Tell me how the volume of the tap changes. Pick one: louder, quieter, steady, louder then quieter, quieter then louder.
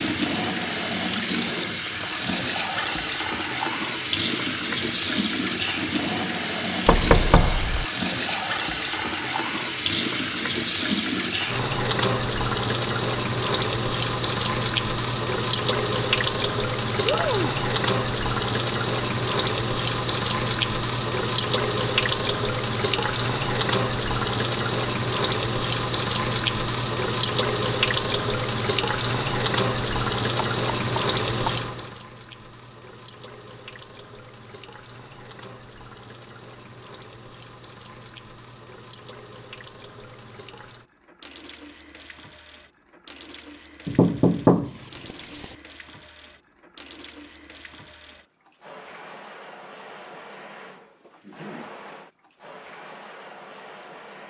quieter.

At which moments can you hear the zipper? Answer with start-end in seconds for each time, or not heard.
not heard.